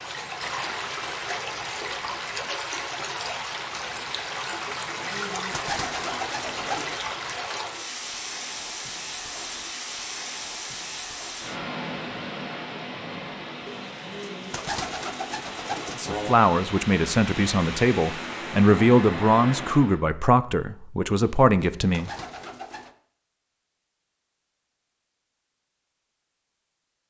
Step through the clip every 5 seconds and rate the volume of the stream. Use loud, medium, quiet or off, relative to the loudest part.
loud, loud, loud, loud, off, off.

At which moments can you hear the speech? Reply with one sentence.
The speech can be heard from 15.9 to 22.1 s.